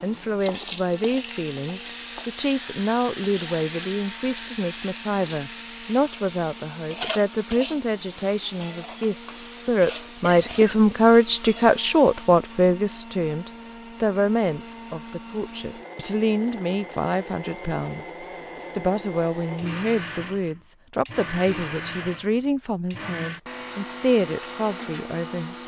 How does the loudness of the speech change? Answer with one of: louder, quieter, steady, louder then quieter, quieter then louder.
louder then quieter.